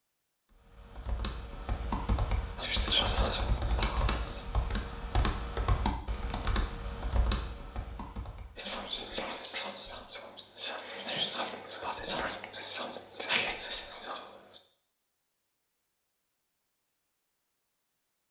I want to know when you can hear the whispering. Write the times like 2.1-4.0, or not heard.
2.6-4.5, 8.6-14.6.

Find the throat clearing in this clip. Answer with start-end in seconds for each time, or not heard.
not heard.